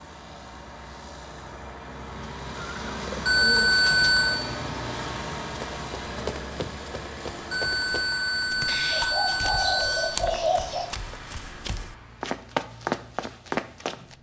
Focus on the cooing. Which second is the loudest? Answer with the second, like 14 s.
10 s.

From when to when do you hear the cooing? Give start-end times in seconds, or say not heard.
2.1-4.2, 8.7-10.9.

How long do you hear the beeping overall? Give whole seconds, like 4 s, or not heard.
4 s.